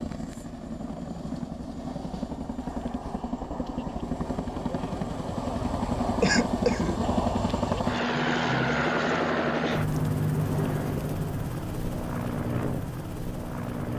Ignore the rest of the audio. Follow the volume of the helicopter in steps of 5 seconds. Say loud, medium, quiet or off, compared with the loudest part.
medium, loud, loud.